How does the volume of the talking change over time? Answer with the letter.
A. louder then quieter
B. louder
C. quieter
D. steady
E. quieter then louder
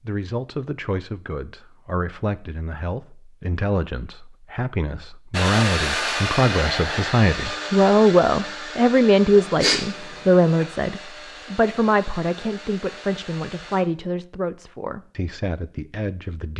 A.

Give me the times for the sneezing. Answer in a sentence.
You can hear the sneezing from 9.3 to 10.7 s.